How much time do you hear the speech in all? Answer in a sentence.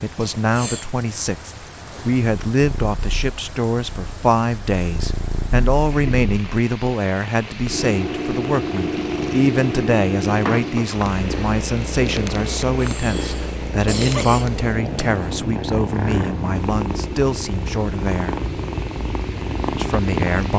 The speech can be heard for 19 seconds in total.